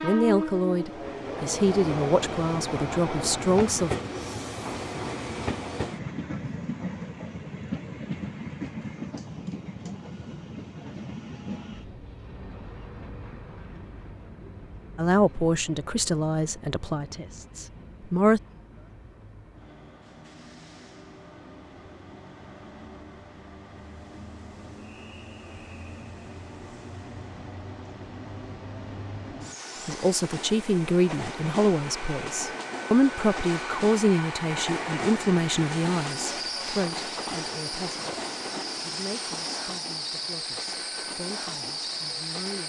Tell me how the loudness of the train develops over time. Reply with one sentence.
The volume of the train goes down, then up.